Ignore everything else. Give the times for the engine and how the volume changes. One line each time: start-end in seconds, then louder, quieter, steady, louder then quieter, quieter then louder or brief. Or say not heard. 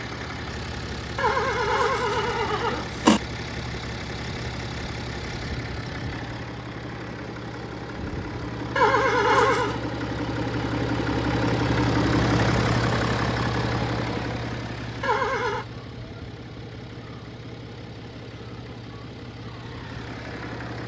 0.0-20.8 louder then quieter.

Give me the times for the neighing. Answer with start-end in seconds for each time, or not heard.
1.1-3.2, 8.8-9.8, 15.0-15.7.